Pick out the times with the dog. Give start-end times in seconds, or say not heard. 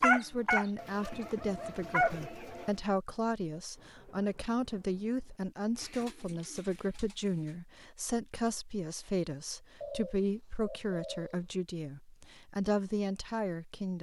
0.0-2.1.